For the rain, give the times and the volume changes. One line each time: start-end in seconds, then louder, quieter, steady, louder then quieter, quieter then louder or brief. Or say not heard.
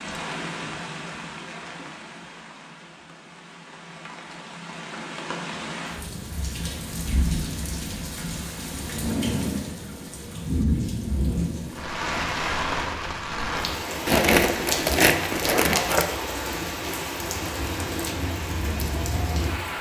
0.0-19.7 louder.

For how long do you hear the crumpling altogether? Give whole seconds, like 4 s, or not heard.
2 s.